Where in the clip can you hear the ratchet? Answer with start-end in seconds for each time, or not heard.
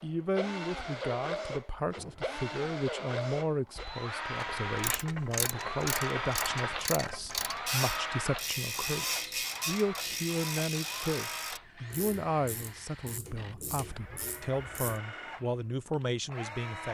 4.3-15.0.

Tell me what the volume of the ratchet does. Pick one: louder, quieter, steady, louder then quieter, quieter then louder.
quieter.